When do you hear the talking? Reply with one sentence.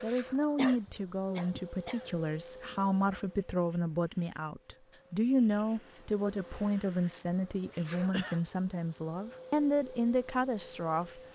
The talking can be heard from 0.0 to 11.2 s.